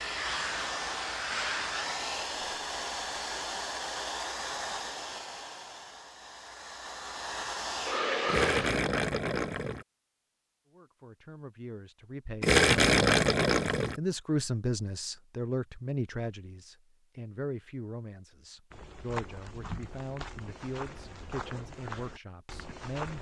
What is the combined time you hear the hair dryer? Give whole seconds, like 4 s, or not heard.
9 s.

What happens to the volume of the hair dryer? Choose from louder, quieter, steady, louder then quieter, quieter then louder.
quieter then louder.